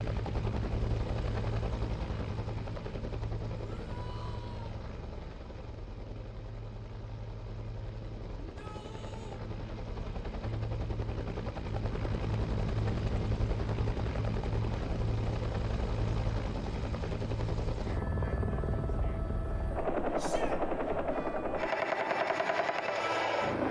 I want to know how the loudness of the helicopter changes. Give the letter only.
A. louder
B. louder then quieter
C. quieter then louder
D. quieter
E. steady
C.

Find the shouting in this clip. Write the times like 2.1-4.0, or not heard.
3.5-4.8, 8.4-9.4, 20.1-20.6.